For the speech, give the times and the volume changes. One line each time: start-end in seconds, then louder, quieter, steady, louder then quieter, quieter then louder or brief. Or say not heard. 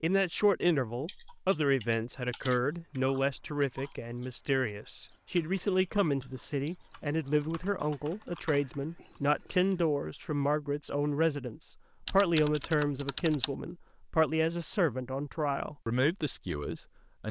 0.0-17.2 steady.